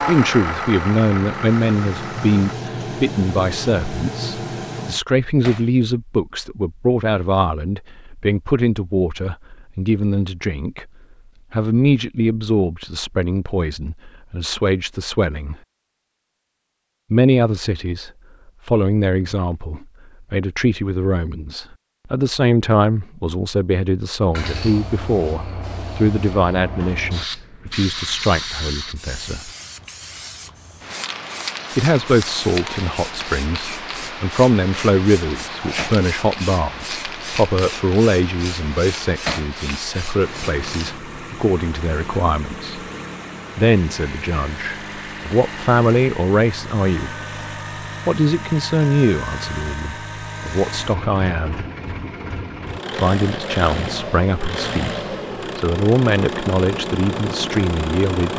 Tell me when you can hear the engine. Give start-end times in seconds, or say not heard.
0.0-2.5, 40.2-58.3.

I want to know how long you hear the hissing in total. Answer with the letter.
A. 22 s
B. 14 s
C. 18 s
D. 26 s
A.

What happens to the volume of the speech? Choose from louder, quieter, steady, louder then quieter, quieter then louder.
steady.